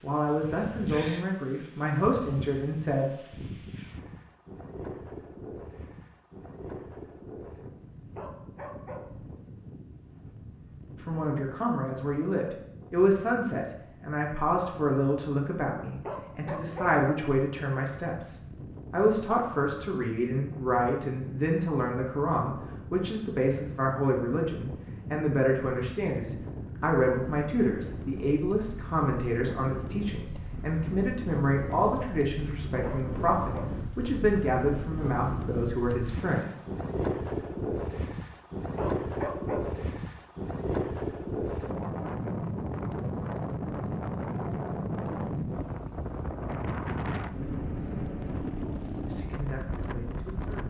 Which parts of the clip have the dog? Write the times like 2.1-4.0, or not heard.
8.2-9.1, 16.1-16.9, 32.8-33.7, 38.8-39.6.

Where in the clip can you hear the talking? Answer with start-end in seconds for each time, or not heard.
0.0-3.2, 11.0-36.6, 49.0-50.6.